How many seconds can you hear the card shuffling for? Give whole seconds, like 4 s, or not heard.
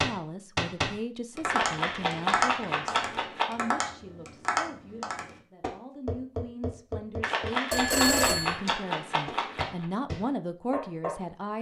5 s.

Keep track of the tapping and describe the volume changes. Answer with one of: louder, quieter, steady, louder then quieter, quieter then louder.
quieter.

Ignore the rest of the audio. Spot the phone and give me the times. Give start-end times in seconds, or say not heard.
7.7-8.6.